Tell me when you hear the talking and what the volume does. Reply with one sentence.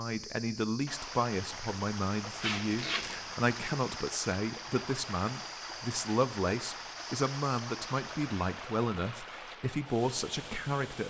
You can hear the talking from 0.0 to 11.0 s, at a steady volume.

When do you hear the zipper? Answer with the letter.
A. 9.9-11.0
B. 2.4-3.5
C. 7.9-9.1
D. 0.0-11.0
B.